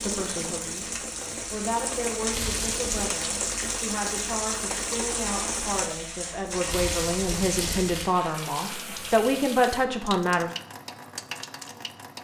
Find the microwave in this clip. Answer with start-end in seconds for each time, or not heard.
not heard.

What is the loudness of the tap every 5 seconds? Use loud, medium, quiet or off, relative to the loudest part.
loud, loud, medium.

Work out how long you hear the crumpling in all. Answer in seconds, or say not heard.
2 s.